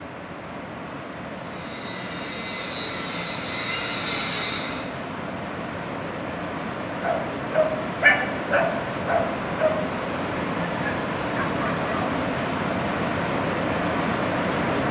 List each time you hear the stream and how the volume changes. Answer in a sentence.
You can hear the stream from 0.0 to 14.8 s, getting louder.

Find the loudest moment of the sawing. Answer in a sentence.
The loudest moment of the sawing is at 4 seconds.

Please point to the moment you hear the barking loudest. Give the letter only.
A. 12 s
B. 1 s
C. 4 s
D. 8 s
D.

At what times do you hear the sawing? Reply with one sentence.
The sawing can be heard from 1.3 to 4.9 s.